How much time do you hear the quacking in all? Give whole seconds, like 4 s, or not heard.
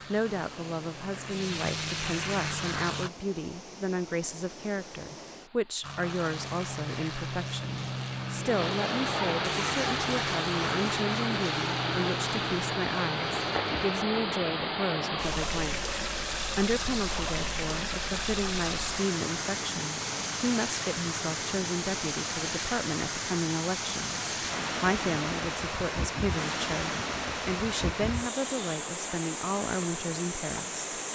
not heard.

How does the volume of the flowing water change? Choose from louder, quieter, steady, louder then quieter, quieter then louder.
louder.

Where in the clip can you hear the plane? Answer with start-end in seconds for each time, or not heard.
0.0-3.1, 5.8-21.9.